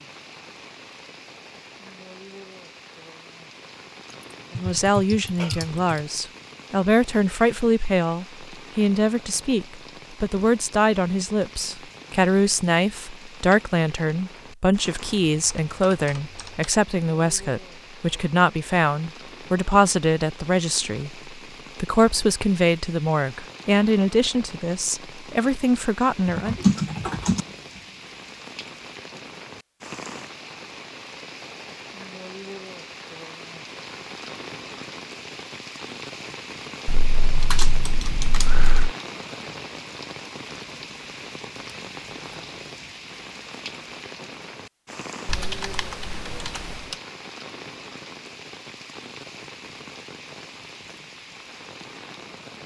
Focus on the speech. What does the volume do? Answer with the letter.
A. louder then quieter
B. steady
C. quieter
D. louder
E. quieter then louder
B.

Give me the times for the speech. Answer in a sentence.
You can hear the speech from 4.5 to 26.6 s.